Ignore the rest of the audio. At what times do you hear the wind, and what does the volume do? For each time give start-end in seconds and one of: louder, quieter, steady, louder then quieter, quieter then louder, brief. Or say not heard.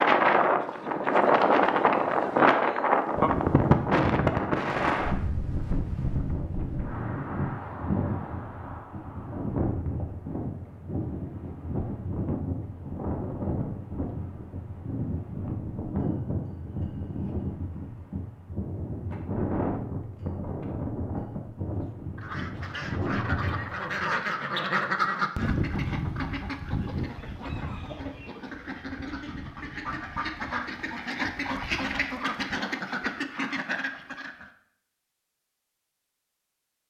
0.0-24.2 quieter.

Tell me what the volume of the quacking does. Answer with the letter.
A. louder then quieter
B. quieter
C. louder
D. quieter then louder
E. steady
D.